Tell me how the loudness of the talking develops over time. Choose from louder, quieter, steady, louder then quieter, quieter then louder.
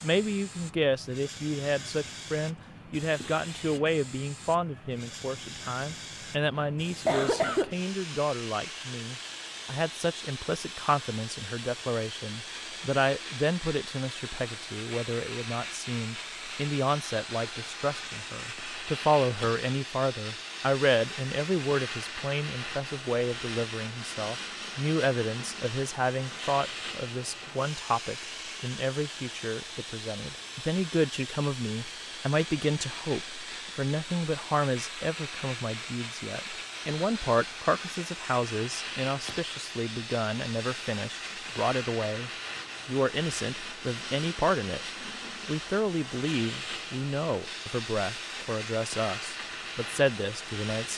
steady.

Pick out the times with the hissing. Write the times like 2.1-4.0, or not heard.
0.0-50.9.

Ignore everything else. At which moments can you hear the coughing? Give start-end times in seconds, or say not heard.
6.5-7.8.